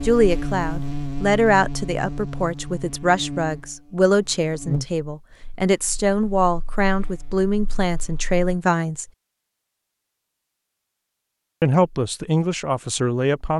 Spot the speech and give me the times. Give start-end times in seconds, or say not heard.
0.0-9.1, 11.6-13.5.